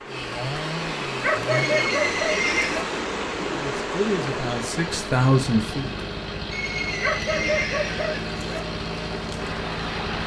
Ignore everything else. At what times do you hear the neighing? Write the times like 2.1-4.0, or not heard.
1.5-2.9, 6.5-8.3.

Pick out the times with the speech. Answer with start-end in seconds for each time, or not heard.
3.5-5.9.